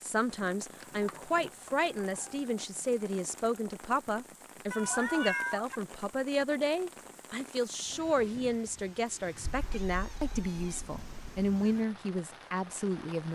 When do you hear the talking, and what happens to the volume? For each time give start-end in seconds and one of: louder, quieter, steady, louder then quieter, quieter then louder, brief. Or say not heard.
0.0-13.3 steady.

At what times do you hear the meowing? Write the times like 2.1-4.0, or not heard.
0.8-2.4, 4.7-5.8, 9.6-11.2.